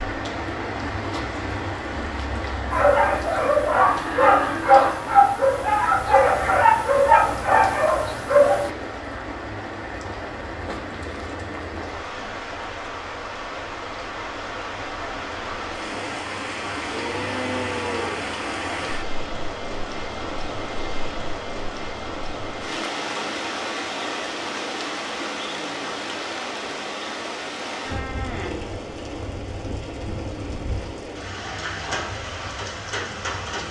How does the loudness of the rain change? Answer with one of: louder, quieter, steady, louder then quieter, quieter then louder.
steady.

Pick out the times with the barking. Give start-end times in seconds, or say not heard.
2.7-8.7.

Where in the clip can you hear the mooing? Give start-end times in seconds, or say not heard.
3.9-5.2, 16.9-18.2.